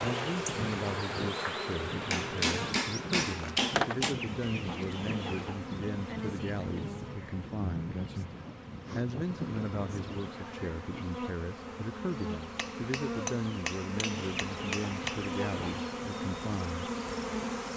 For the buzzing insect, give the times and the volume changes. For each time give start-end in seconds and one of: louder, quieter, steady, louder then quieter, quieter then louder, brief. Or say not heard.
0.0-17.7 quieter then louder.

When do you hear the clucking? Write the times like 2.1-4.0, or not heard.
4.0-5.6, 14.2-16.0.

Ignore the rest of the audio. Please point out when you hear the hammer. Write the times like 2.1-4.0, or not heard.
2.1-4.2, 12.6-15.3.